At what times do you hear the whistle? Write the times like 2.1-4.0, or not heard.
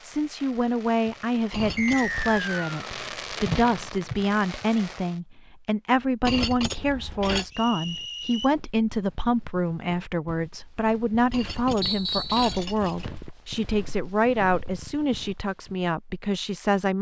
1.8-2.9, 7.5-8.5, 11.8-12.6.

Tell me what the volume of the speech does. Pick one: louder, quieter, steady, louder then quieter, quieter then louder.
steady.